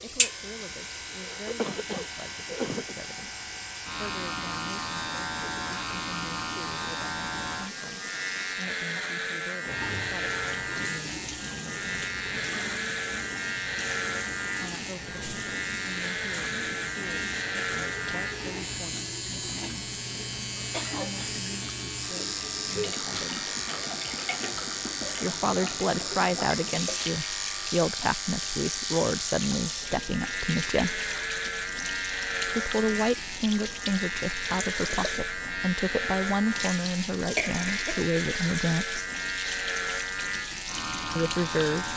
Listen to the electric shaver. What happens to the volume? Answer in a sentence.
The volume of the electric shaver stays about the same.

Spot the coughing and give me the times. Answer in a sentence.
The coughing can be heard from 1.1 to 3.0 s, from 20.7 to 21.2 s and from 37.4 to 38.0 s.